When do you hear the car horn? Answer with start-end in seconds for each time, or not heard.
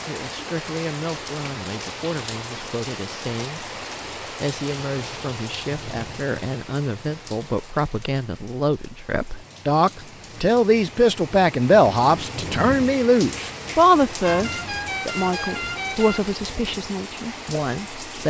14.2-16.2.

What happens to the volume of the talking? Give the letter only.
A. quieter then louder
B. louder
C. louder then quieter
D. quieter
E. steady
C.